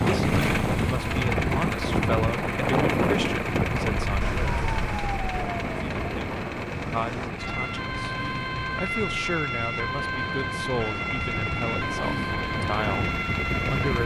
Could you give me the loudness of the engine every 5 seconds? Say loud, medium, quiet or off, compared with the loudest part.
loud, medium, medium.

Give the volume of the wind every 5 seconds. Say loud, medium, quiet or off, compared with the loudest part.
loud, medium, medium.